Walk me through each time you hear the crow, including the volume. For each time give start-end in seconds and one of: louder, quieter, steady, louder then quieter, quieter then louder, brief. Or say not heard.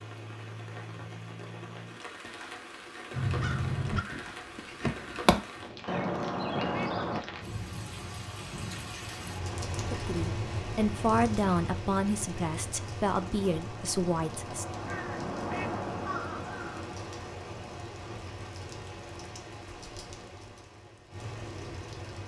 3.1-7.2 quieter then louder
13.2-18.2 louder then quieter.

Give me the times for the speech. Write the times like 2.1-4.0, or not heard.
9.8-14.8.